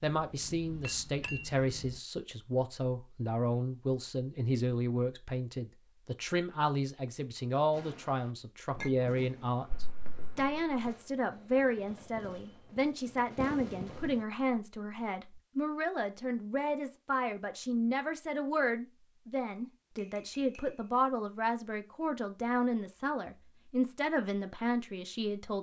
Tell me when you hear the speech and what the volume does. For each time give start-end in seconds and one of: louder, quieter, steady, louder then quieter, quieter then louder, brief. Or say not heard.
0.0-25.5 steady.